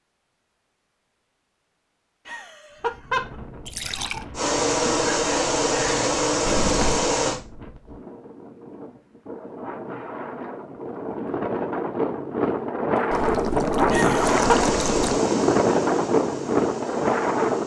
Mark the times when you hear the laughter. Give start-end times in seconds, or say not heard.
2.2-3.4, 13.9-14.6.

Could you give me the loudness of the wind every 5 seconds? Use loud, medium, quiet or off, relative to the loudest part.
quiet, quiet, loud, loud.